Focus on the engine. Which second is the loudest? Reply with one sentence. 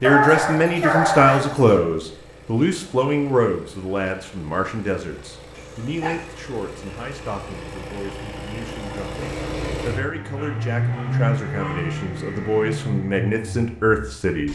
The loudest moment of the engine is at 11 seconds.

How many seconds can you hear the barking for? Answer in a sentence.
You can hear the barking for 4 seconds altogether.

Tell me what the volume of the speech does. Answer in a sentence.
The volume of the speech goes down, then up.